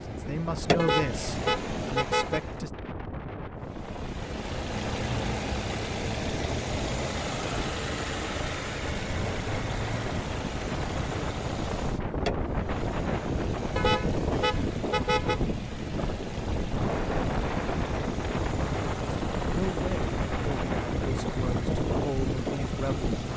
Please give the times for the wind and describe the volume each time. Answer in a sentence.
You can hear the wind from 0.1 to 23.3 s, getting louder.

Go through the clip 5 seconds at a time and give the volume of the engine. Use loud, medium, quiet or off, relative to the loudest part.
loud, loud, medium, medium, medium.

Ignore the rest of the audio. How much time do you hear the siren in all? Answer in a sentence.
The siren can't be heard in this clip.